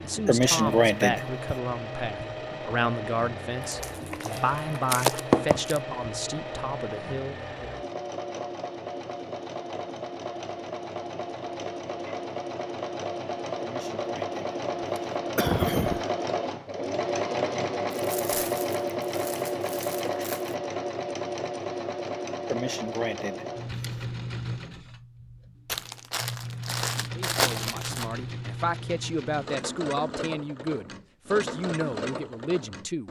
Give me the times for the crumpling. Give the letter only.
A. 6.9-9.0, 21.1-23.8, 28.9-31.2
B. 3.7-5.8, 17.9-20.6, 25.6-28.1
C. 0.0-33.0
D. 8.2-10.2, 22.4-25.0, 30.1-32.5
B.